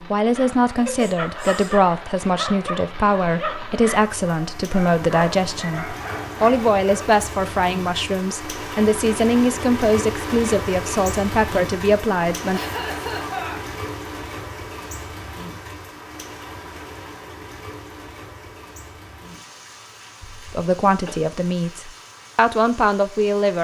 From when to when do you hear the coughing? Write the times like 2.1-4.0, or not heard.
0.8-1.8, 12.5-13.6, 20.2-21.1.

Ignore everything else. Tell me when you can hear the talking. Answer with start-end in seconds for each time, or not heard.
0.1-12.6, 20.5-23.5.